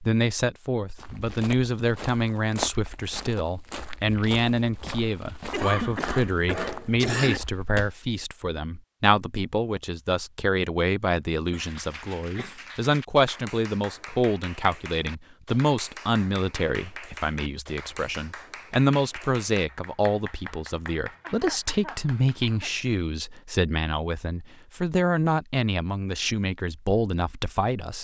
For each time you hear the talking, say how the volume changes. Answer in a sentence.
You can hear the talking from 0.0 to 27.9 s, at a steady volume.